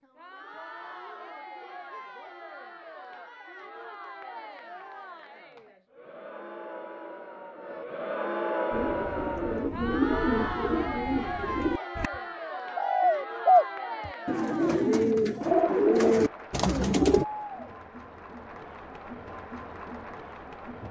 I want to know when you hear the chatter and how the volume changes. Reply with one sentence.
The chatter can be heard from 0.0 to 20.8 s, getting louder then quieter.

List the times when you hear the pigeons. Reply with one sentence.
You can hear the pigeons from 8.7 to 17.2 s.